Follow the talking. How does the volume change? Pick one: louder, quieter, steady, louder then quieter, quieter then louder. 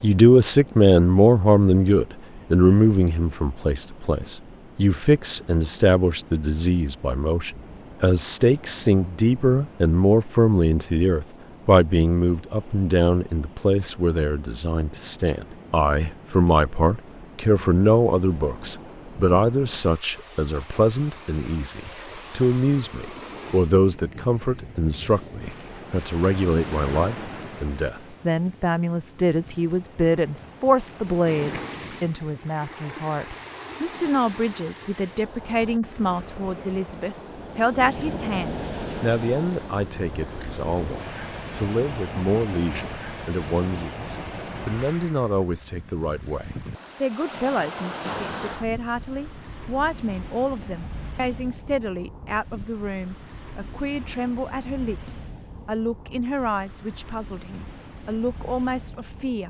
quieter.